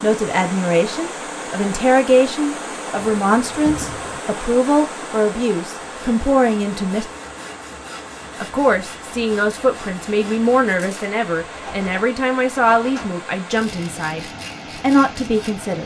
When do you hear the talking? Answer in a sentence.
You can hear the talking from 0.0 to 7.1 s and from 8.4 to 15.8 s.